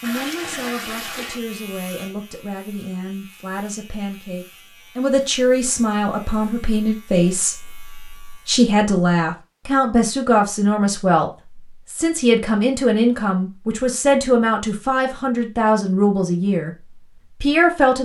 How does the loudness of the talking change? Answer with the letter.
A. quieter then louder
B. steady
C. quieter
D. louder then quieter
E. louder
E.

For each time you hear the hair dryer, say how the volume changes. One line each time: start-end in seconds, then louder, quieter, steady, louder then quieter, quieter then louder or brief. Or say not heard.
not heard.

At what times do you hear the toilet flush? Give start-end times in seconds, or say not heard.
0.0-1.4.